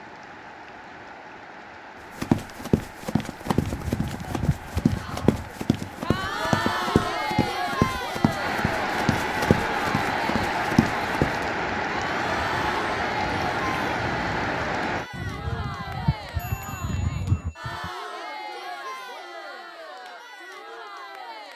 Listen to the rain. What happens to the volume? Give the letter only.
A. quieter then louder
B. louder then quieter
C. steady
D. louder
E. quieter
D.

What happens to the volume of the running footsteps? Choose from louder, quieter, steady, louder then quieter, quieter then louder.
steady.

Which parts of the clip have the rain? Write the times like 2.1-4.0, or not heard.
0.0-15.1.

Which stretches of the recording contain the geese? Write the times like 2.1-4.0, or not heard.
3.5-5.5, 15.1-17.9.